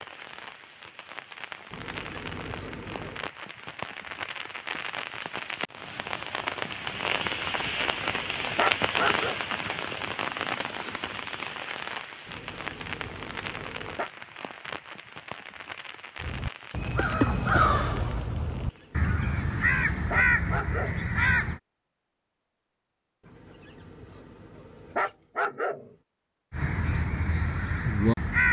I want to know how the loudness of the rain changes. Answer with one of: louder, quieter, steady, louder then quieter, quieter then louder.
louder then quieter.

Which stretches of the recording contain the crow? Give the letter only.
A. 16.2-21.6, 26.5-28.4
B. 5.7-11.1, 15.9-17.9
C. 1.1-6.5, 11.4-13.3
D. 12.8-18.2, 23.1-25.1
A.